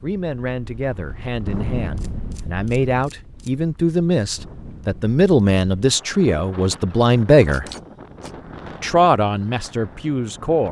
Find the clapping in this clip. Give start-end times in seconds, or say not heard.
not heard.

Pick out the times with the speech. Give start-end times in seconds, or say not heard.
0.0-7.7, 8.8-10.6.